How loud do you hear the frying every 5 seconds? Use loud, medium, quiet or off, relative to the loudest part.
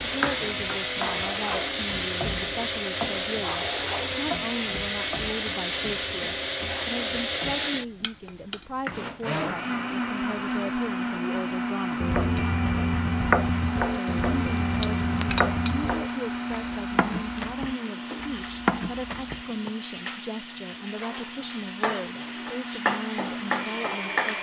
loud, medium, medium, medium, loud.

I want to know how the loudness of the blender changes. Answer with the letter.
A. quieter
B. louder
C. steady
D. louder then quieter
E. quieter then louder
A.